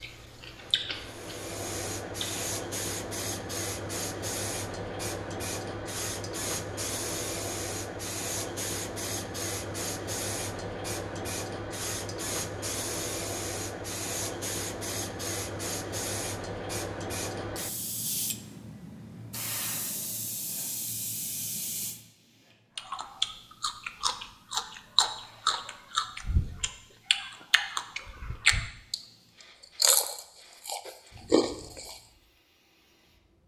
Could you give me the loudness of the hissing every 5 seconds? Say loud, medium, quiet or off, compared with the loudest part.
loud, loud, loud, loud, medium, quiet, quiet.